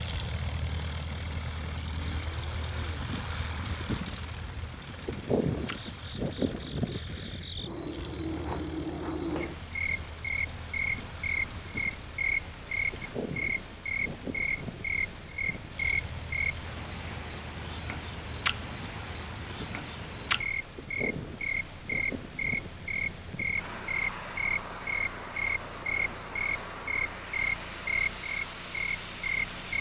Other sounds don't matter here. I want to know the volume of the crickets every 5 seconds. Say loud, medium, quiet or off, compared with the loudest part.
quiet, loud, loud, loud, loud, loud.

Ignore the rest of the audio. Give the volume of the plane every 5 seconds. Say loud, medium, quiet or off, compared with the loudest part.
loud, loud, medium, medium, medium, medium.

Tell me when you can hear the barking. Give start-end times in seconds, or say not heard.
not heard.